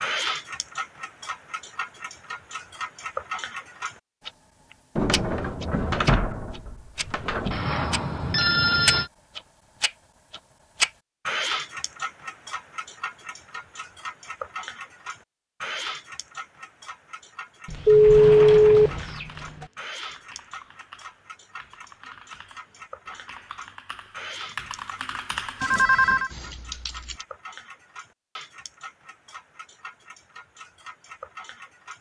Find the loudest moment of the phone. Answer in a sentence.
The loudest moment of the phone is at 18 seconds.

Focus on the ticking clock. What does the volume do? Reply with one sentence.
The volume of the ticking clock goes down.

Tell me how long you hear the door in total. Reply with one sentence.
You can hear the door for 5 seconds altogether.